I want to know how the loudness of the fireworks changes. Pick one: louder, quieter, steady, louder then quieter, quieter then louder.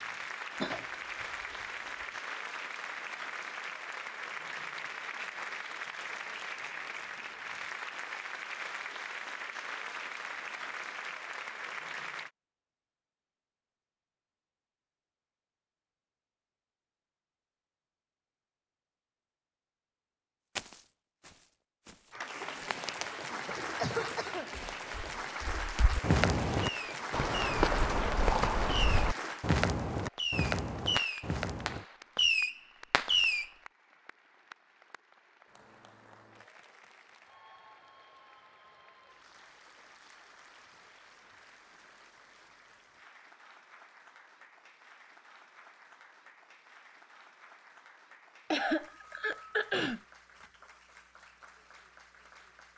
louder.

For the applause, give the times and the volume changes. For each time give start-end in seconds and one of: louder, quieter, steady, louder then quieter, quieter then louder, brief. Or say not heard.
0.0-12.3 steady
22.1-52.7 quieter.